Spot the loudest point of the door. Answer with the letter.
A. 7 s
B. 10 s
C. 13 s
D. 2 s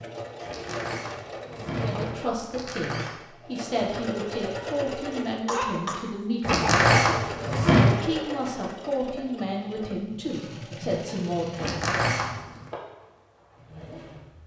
A.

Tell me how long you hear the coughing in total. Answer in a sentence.
You can hear the coughing for 2 seconds altogether.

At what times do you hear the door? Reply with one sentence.
You can hear the door from 0.4 to 3.2 s, from 6.4 to 8.0 s and from 11.6 to 12.7 s.